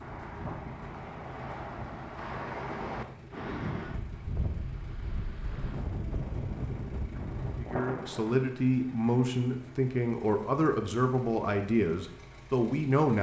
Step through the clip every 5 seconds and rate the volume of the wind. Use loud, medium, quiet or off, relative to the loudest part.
loud, loud, off.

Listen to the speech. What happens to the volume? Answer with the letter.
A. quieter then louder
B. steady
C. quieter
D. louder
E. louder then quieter
B.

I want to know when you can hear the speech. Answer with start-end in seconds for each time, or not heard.
7.6-13.1.